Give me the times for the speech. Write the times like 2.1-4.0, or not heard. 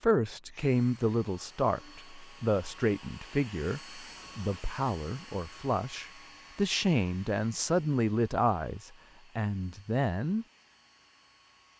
0.0-10.4.